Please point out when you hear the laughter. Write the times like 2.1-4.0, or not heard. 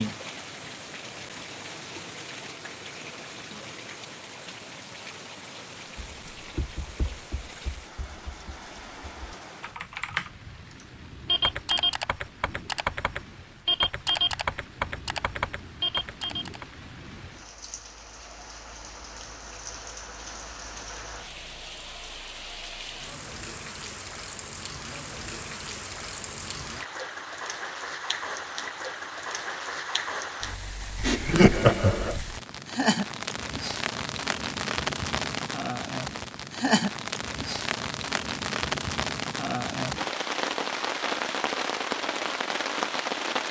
31.0-32.2.